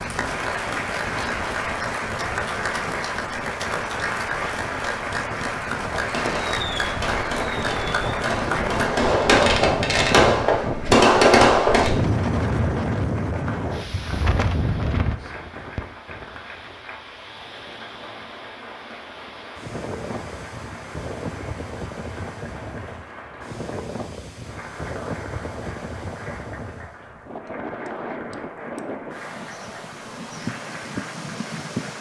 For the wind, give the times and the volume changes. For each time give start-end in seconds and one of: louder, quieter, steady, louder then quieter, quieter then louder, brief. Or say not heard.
0.0-31.9 louder then quieter.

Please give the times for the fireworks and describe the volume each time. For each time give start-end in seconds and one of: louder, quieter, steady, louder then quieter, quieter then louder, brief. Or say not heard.
6.0-11.9 louder.